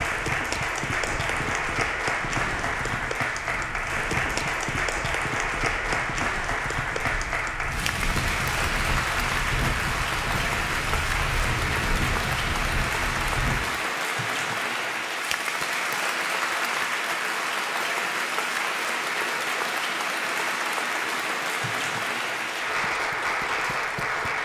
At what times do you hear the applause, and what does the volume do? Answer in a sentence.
The applause can be heard from 0.0 to 24.4 s, at a steady volume.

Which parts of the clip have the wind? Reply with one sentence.
You can hear the wind from 0.0 to 13.6 s.